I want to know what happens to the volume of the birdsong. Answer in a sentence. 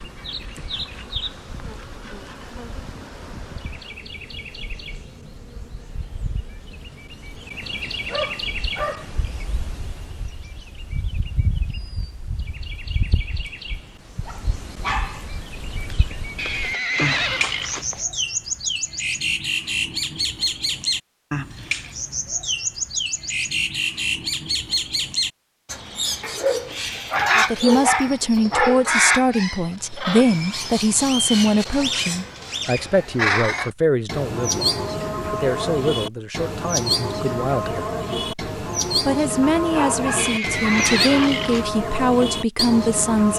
The loudness of the birdsong goes up.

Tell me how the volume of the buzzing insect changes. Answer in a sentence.
The volume of the buzzing insect goes down.